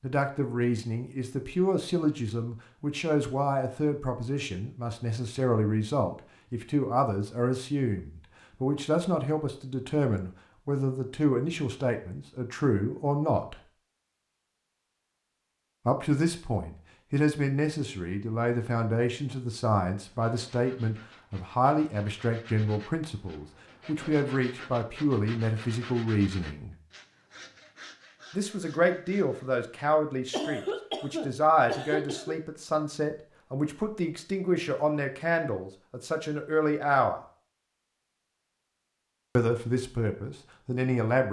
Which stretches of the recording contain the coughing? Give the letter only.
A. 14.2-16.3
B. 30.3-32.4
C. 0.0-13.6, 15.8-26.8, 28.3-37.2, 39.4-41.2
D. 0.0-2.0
B.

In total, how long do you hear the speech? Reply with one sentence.
You can hear the speech for 35 seconds altogether.